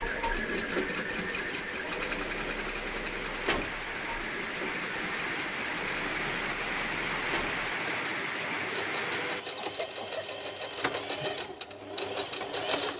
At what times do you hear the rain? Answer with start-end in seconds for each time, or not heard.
0.0-9.4.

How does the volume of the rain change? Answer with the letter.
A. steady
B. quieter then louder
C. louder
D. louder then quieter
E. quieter
C.